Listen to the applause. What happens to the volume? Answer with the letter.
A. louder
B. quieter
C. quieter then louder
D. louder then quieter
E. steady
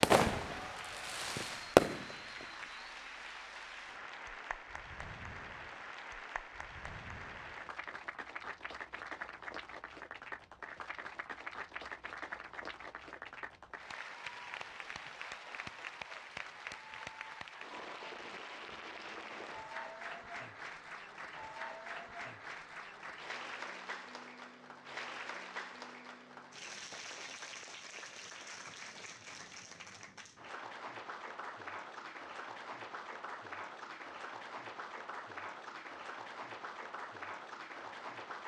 E.